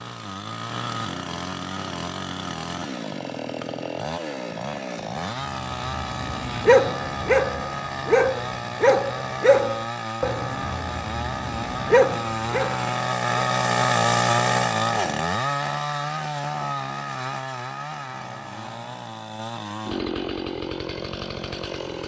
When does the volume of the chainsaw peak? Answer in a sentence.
The volume of the chainsaw peaks at 14 seconds.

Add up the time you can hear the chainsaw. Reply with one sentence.
The chainsaw can be heard for 22 seconds in total.